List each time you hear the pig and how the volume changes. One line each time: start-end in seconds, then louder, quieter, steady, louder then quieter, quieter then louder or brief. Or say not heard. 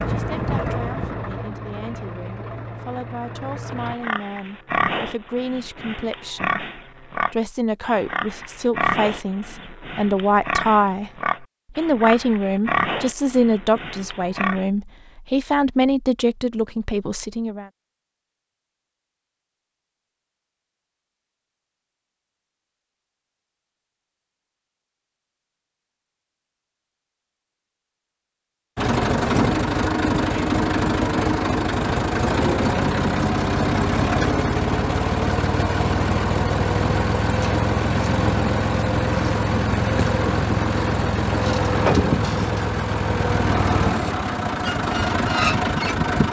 3.6-14.7 steady.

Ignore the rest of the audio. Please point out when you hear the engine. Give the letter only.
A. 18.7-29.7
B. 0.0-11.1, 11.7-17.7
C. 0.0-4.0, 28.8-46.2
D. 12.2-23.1
C.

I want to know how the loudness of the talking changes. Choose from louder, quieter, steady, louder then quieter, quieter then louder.
louder.